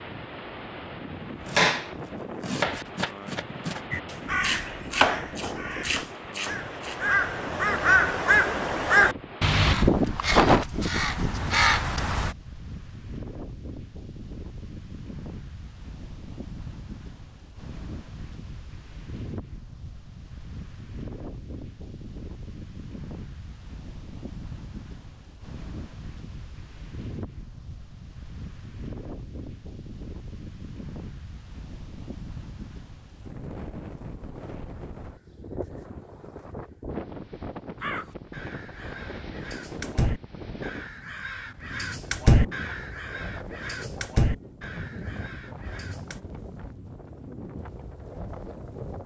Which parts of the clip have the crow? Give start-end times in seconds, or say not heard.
3.9-12.3, 37.8-46.2.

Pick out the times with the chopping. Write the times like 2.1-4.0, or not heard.
1.4-7.0.